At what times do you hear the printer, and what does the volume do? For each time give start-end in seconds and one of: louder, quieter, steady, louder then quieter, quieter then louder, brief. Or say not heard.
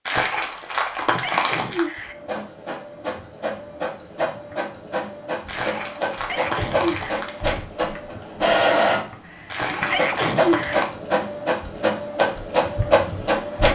2.1-13.7 louder.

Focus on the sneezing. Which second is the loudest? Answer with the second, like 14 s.
10 s.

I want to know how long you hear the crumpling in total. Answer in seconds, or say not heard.
5 s.